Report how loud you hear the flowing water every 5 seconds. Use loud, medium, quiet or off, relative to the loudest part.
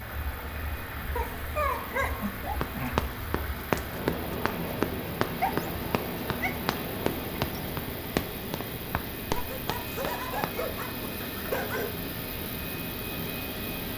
loud, loud, medium.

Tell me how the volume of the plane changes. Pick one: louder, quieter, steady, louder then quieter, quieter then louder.
louder.